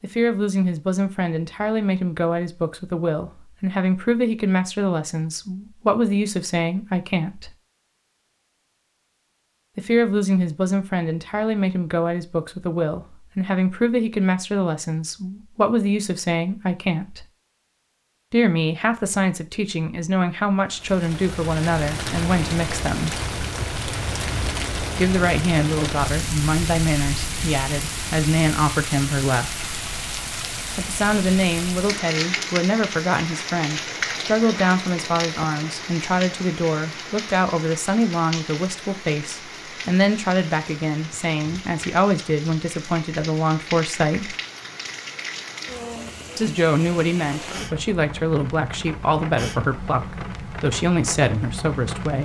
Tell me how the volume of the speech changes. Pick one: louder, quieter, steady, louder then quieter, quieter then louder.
steady.